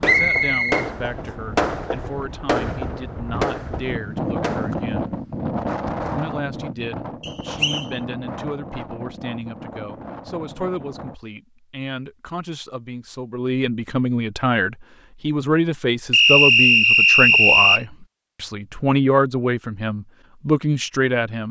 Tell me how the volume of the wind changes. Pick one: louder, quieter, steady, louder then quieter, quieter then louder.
louder then quieter.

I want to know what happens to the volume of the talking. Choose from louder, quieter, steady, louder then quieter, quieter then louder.
louder.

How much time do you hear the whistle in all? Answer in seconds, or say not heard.
3 s.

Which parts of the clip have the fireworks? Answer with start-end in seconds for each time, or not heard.
0.0-5.0.